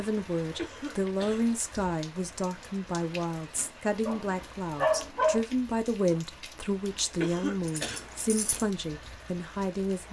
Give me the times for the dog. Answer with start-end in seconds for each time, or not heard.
3.5-5.5.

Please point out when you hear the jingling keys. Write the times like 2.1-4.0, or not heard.
7.7-8.7.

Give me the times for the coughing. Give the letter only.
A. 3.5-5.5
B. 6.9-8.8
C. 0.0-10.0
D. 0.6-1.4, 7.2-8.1
D.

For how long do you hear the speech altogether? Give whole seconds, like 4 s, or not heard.
10 s.